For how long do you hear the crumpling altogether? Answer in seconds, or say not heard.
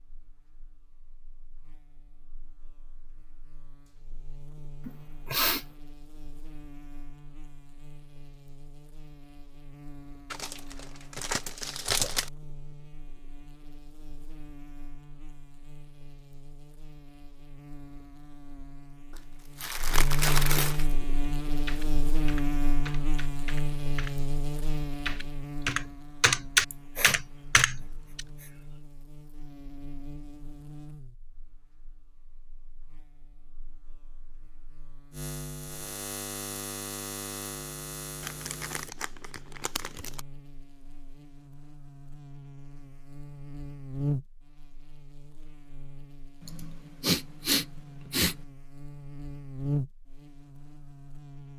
6 s.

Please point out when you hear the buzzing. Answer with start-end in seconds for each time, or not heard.
0.0-51.5.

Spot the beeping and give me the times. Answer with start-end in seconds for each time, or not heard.
not heard.